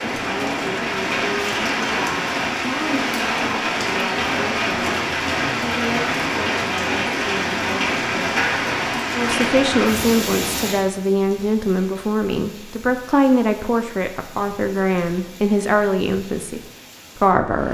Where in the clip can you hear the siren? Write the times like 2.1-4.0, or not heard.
not heard.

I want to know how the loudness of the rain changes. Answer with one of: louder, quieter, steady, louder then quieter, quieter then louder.
quieter.